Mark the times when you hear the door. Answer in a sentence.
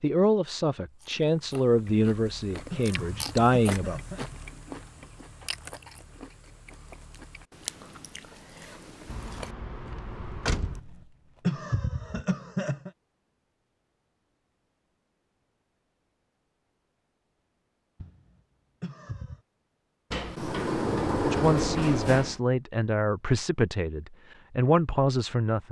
The door can be heard from 9.1 to 10.8 s and from 20.1 to 22.4 s.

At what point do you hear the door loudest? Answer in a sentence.
The volume of the door peaks at 21 seconds.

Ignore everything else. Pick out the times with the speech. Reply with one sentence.
You can hear the speech from 0.0 to 4.0 s and from 21.2 to 25.6 s.